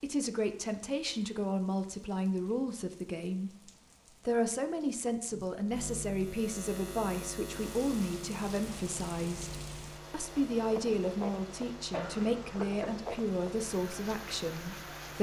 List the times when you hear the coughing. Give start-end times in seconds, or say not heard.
11.9-13.1.